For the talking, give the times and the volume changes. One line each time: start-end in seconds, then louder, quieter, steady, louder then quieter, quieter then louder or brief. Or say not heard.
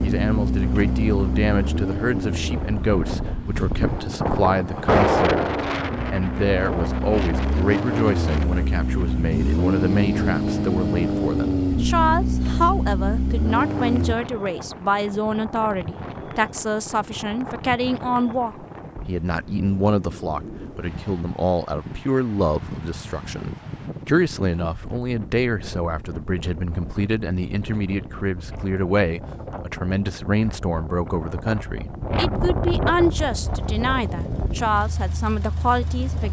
0.0-36.2 steady.